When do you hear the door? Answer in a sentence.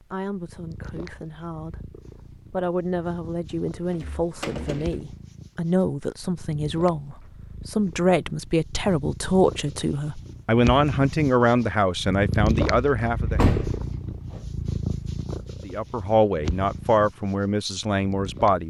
The door can be heard from 3.9 to 5.0 s and from 13.3 to 14.4 s.